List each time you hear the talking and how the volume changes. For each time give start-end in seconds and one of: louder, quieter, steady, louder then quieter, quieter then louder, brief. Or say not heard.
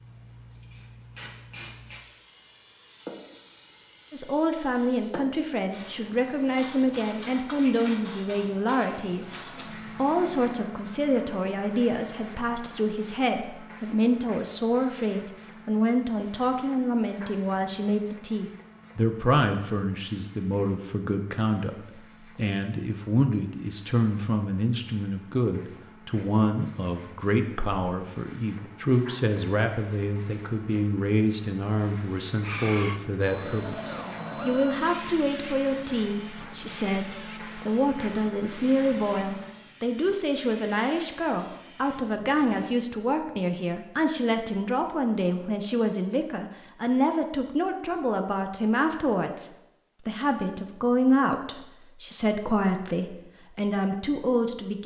4.1-54.8 steady.